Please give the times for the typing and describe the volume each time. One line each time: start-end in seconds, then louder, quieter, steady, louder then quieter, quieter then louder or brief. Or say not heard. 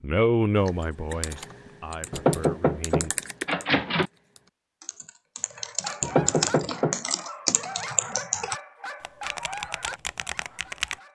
0.6-10.9 louder then quieter.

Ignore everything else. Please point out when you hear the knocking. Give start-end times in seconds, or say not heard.
2.1-4.1, 6.0-7.0.